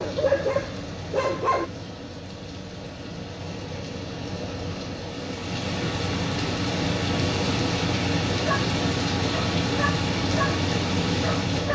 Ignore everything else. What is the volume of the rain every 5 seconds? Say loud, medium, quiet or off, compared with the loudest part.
medium, loud, loud.